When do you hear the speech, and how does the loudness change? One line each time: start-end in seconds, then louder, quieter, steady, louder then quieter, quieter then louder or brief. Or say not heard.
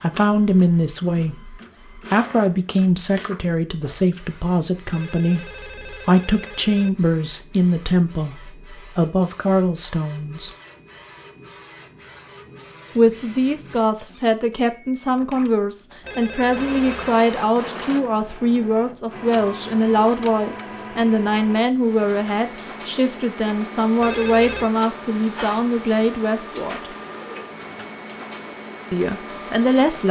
0.0-10.5 steady
12.9-26.9 steady
28.9-30.0 brief.